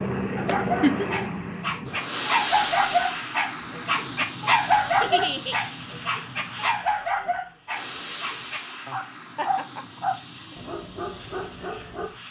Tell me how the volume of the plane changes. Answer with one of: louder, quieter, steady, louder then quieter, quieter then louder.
quieter.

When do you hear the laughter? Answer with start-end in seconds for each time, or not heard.
0.5-1.1, 5.0-5.5, 9.2-10.6.